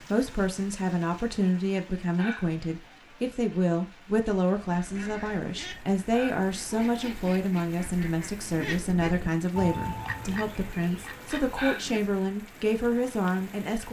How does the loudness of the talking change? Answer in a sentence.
The volume of the talking stays about the same.